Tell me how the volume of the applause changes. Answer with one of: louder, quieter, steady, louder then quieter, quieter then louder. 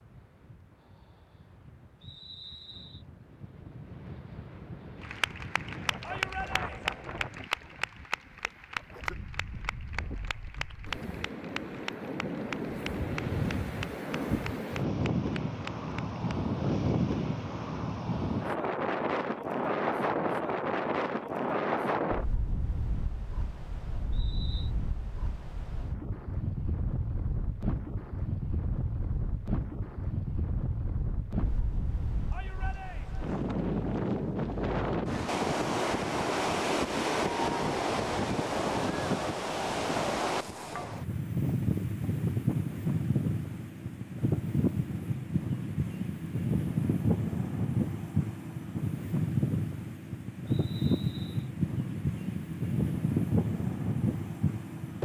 quieter.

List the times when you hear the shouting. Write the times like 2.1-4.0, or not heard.
6.0-7.0, 32.3-33.2.